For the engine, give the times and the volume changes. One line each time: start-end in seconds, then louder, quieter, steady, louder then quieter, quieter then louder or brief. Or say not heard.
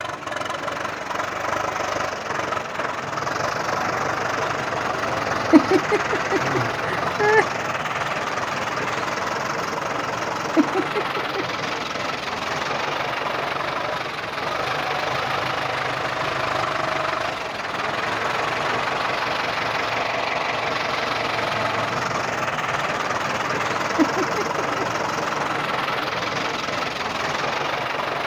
0.0-28.2 steady.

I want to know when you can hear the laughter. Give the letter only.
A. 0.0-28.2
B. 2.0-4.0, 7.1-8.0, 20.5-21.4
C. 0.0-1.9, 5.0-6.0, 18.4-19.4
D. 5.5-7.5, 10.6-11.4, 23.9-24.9
D.